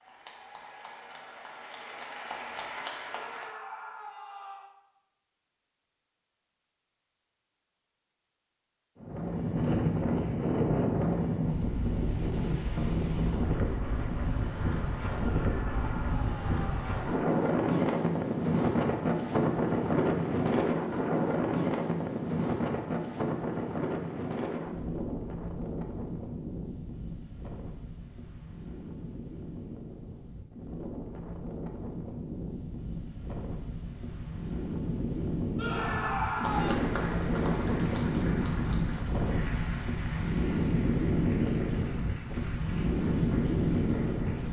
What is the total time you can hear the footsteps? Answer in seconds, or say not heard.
not heard.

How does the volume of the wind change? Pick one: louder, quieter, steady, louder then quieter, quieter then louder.
quieter then louder.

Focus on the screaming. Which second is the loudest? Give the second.
36 s.